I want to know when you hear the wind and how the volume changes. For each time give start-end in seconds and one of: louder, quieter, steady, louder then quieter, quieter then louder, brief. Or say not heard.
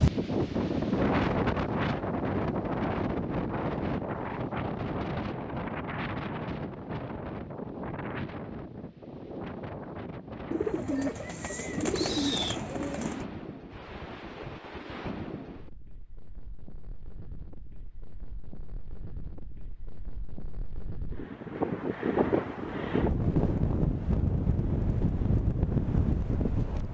0.0-26.8 quieter then louder.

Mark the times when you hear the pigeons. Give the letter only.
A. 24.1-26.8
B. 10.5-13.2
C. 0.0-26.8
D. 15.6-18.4
B.